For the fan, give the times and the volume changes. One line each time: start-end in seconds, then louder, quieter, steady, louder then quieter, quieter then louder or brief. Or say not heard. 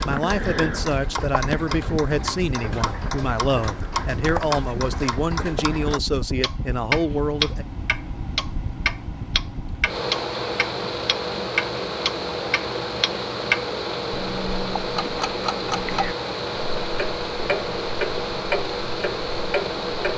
0.0-20.1 louder.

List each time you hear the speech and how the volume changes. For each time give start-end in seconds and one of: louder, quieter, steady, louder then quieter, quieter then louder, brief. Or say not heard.
0.0-7.7 steady.